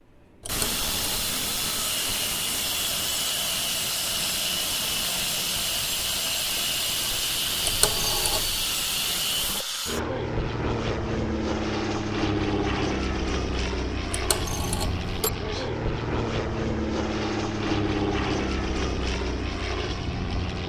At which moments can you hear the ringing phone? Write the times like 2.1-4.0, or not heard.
0.4-1.2, 7.6-8.6, 14.1-15.3.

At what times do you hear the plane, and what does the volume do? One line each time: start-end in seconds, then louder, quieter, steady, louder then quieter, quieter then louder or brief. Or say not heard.
0.1-20.6 steady.